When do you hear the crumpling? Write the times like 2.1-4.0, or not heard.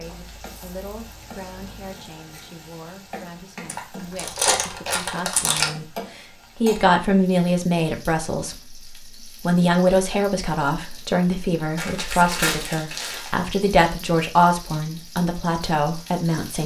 3.6-5.7, 11.8-13.3.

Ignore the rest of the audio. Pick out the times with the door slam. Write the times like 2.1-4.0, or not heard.
not heard.